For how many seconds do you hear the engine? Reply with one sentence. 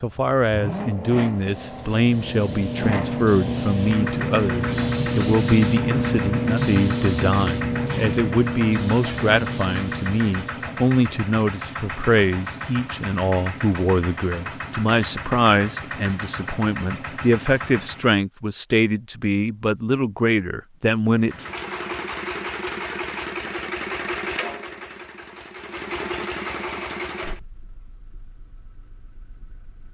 The engine can be heard for 27 seconds in total.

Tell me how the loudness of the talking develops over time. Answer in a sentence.
The volume of the talking stays about the same.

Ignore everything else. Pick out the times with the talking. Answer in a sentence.
You can hear the talking from 0.0 to 21.4 s.